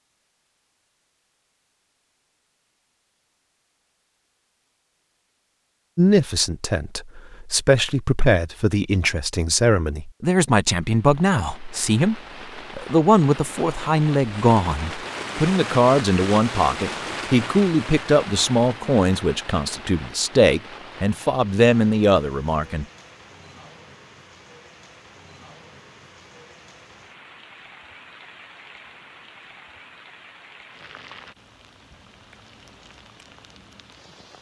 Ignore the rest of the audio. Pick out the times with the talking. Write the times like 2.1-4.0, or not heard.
6.0-22.9.